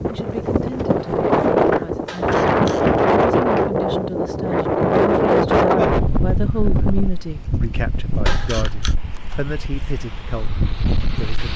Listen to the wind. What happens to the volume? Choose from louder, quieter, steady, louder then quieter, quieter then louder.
quieter.